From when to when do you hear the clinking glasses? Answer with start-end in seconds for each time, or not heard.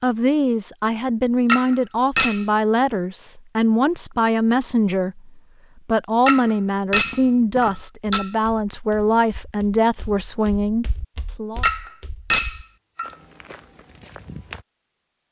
1.4-2.5, 6.2-8.3, 11.6-13.1.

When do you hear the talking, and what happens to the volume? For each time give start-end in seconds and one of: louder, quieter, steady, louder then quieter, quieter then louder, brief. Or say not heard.
0.0-11.7 steady.